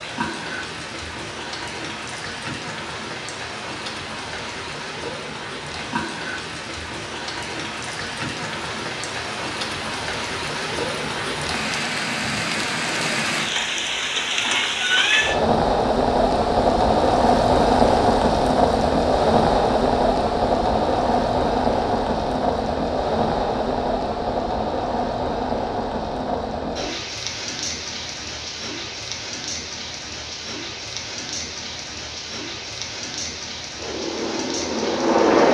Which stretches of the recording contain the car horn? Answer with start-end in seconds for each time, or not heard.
not heard.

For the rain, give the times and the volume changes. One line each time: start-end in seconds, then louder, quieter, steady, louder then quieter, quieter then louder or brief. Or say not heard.
0.0-35.4 louder then quieter.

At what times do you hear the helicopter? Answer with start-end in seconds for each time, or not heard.
33.8-35.4.